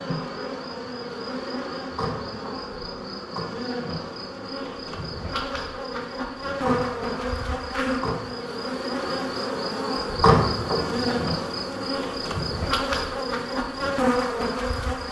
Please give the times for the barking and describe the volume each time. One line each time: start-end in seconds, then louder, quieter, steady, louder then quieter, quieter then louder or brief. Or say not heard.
not heard.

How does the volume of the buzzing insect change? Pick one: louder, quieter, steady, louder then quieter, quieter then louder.
louder.